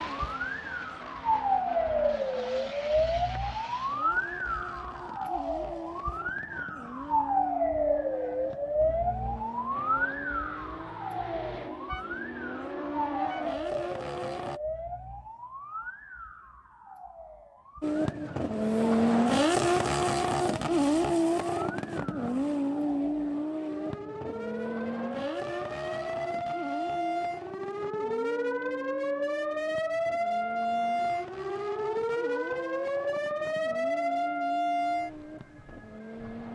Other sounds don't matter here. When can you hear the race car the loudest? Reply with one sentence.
The volume of the race car peaks at 19 seconds.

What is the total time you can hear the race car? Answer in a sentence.
The race car can be heard for 33 seconds in total.